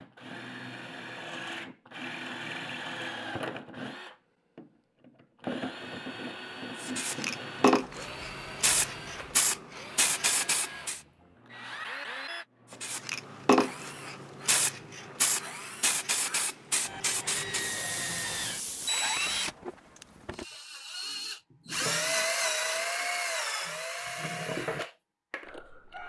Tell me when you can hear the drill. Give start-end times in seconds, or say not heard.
0.0-26.0.